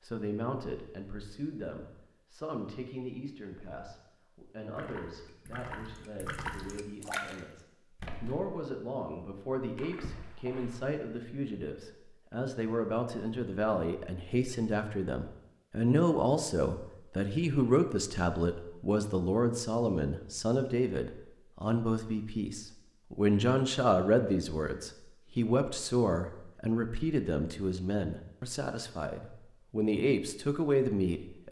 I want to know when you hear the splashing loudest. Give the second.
7 s.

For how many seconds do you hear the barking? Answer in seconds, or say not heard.
not heard.